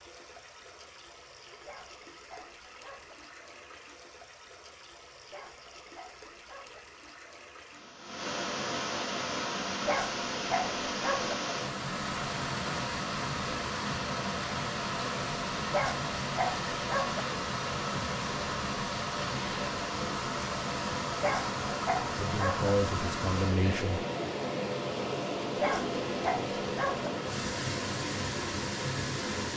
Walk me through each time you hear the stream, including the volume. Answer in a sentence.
You can hear the stream from 0.0 to 29.5 s, getting louder.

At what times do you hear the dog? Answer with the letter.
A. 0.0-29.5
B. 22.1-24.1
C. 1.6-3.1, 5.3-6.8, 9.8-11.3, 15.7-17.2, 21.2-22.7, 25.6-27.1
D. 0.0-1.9
C.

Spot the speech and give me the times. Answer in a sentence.
The speech can be heard from 22.1 to 24.1 s.